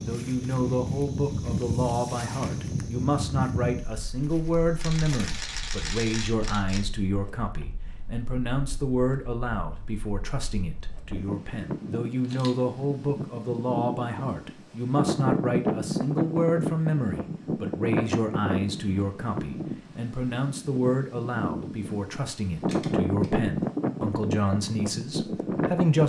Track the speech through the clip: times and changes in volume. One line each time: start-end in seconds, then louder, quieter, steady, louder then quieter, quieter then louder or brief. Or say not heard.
0.0-26.0 steady.